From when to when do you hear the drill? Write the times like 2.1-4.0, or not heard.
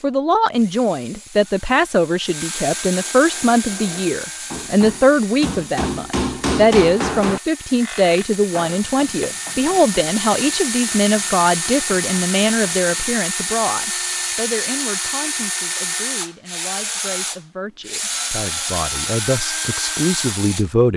0.0-20.7.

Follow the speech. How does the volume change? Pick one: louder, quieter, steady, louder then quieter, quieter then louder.
quieter.